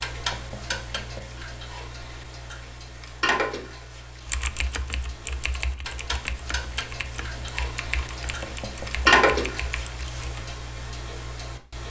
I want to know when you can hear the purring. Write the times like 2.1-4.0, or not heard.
not heard.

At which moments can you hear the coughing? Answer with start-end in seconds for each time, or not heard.
not heard.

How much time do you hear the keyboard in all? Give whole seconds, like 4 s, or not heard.
6 s.